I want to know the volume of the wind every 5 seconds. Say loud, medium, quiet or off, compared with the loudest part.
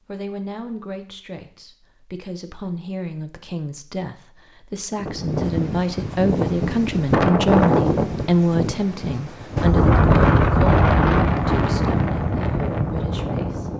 off, loud, loud.